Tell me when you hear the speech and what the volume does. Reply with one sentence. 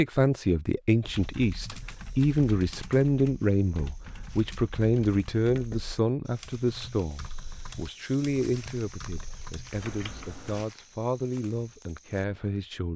The speech can be heard from 0.0 to 12.9 s, getting quieter.